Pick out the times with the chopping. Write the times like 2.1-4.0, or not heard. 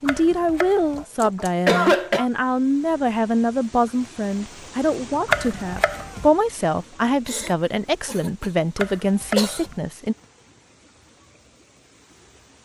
0.1-1.1, 5.2-6.3, 8.8-9.8.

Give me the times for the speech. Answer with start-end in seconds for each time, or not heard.
0.0-10.2.